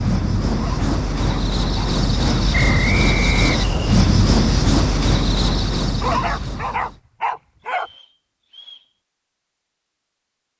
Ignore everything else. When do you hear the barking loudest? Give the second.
6 s.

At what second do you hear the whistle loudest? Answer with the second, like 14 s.
3 s.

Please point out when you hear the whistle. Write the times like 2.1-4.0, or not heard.
2.5-3.7, 7.7-8.9.